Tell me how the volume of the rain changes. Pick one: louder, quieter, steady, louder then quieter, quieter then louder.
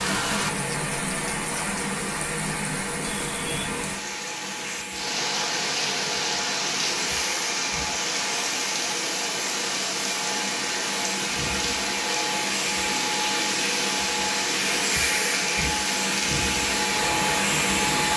steady.